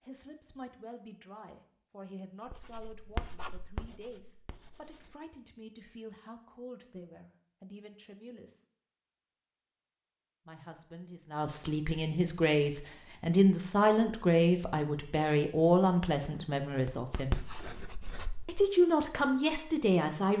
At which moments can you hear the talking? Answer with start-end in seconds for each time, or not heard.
0.0-8.7, 10.4-17.4, 18.4-20.3.